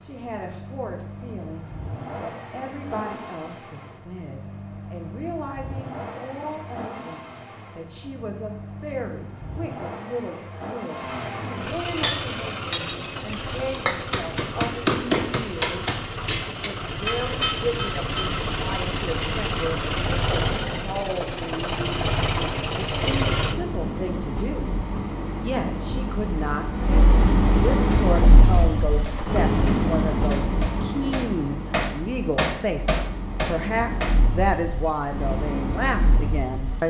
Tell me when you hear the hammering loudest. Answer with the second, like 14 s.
15 s.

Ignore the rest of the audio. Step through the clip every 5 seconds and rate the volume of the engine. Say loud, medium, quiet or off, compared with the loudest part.
quiet, quiet, medium, medium, loud, loud, medium, medium.